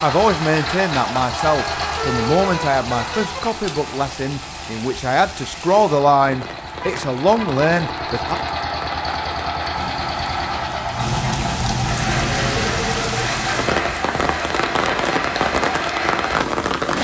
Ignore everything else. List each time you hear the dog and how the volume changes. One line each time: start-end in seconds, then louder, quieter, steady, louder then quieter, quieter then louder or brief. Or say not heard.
not heard.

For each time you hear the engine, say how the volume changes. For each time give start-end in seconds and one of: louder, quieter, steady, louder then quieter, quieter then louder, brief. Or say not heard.
0.0-16.9 quieter then louder.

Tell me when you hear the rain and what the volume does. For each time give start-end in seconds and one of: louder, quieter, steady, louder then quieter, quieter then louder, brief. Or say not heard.
0.0-16.9 louder.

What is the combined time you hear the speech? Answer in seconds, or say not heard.
8 s.